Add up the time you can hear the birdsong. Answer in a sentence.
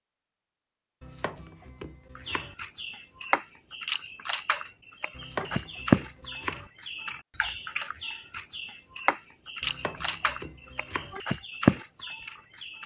You can hear the birdsong for 11 seconds altogether.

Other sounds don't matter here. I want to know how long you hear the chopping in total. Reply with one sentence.
You can hear the chopping for 5 seconds altogether.